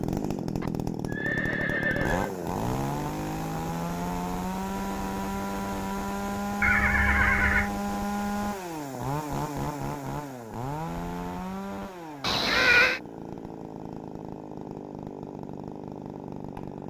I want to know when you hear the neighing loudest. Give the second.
13 s.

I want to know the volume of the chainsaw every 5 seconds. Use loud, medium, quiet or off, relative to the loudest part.
loud, loud, medium, medium.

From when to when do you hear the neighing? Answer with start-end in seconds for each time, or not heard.
0.6-2.3, 6.6-7.7, 12.2-13.0.